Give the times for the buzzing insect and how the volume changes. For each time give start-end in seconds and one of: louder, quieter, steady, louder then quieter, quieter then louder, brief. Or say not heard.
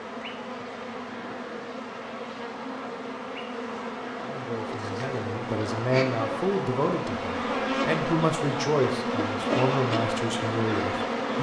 0.0-11.3 louder.